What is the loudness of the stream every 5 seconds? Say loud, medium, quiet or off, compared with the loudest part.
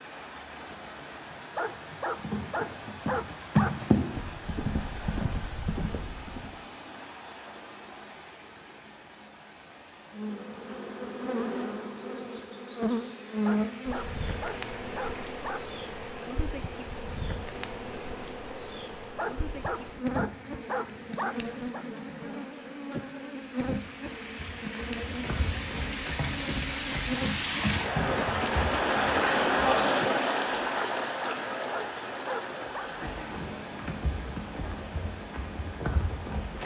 quiet, quiet, quiet, quiet, quiet, loud, medium, quiet.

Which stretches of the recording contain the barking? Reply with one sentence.
You can hear the barking from 1.6 to 3.9 s, from 13.4 to 15.7 s, from 19.1 to 21.9 s and from 30.8 to 32.9 s.